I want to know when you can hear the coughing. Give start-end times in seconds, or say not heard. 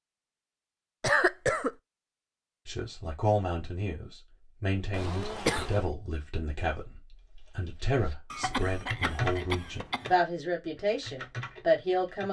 1.0-1.8, 4.9-5.8, 8.3-10.2.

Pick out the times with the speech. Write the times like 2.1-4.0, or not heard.
2.6-12.2.